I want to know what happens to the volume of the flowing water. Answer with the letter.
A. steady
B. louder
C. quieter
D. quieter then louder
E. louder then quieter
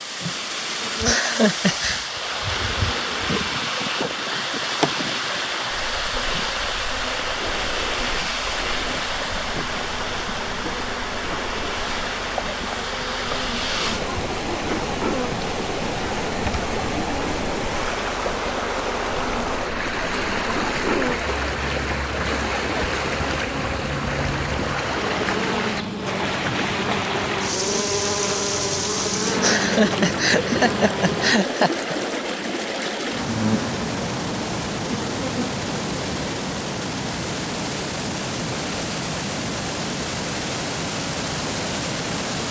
A.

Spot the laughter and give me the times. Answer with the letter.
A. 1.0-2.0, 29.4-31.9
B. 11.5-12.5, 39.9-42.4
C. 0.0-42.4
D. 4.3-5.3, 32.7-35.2
A.